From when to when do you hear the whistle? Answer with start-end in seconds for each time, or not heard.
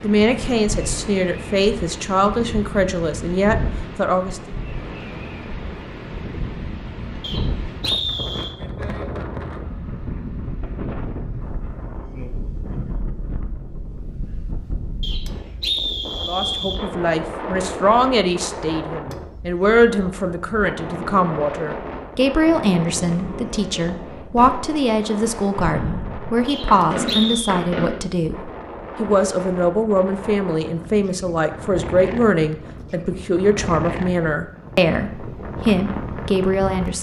7.2-8.6, 15.0-16.8, 26.4-27.6.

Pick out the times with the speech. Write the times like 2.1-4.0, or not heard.
0.0-4.4, 16.2-36.9.